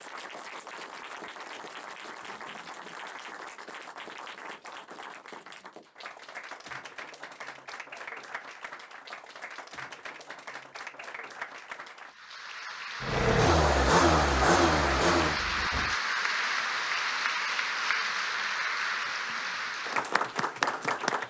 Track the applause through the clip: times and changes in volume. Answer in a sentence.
The applause can be heard from 0.0 to 21.2 s, getting louder.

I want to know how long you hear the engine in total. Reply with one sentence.
You can hear the engine for 3 seconds altogether.